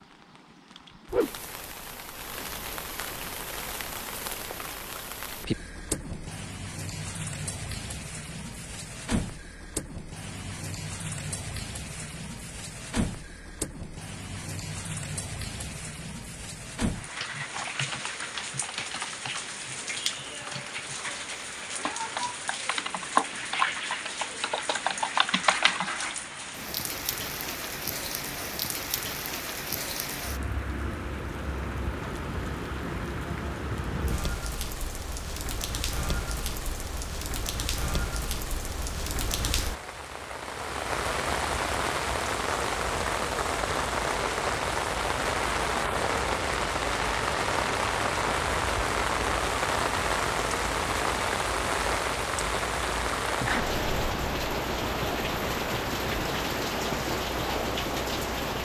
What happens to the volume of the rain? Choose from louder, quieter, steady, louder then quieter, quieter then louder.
louder.